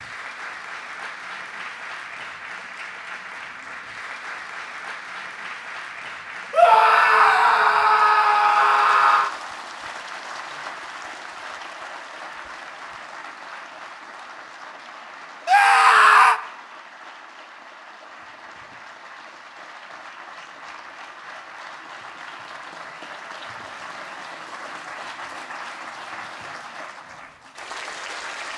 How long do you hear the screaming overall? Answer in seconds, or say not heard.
4 s.